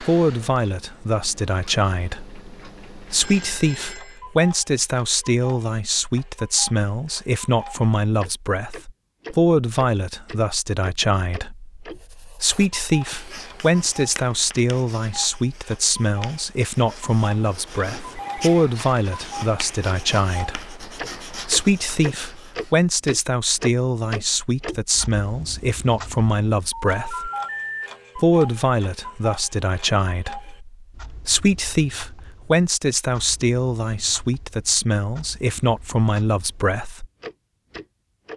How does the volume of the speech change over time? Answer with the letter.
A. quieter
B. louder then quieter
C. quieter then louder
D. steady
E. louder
D.